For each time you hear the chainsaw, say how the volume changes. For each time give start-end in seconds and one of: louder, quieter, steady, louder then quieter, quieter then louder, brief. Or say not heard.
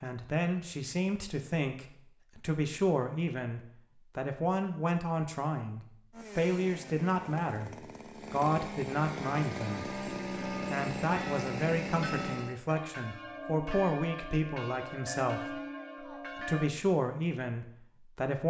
6.1-12.6 louder.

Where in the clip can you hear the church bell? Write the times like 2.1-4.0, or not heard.
9.4-16.7.